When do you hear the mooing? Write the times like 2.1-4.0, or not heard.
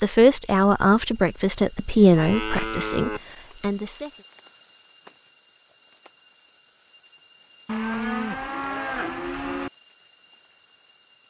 1.9-3.2, 7.7-9.7.